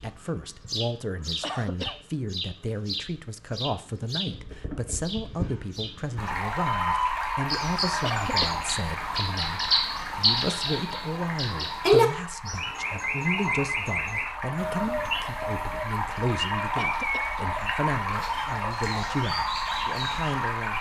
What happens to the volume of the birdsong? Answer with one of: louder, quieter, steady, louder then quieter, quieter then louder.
louder then quieter.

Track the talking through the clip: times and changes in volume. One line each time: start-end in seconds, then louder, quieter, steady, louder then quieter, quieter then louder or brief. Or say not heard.
0.0-20.7 steady.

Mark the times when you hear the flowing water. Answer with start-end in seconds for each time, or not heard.
6.2-20.7.